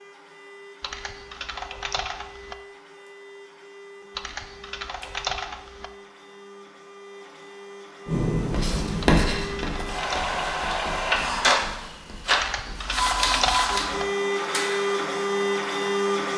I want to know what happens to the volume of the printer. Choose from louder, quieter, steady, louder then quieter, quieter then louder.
louder.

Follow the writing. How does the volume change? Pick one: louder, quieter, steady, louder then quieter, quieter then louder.
quieter.